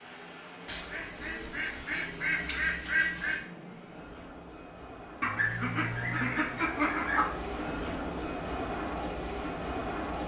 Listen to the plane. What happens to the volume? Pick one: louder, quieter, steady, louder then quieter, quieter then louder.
louder.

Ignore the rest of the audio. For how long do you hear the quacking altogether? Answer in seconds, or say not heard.
5 s.